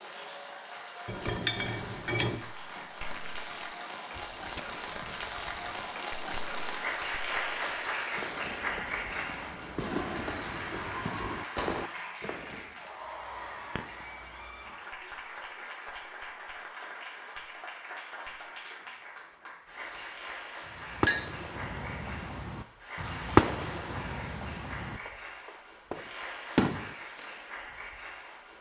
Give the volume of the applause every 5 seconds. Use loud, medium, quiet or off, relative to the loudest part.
medium, loud, medium, medium, medium, medium.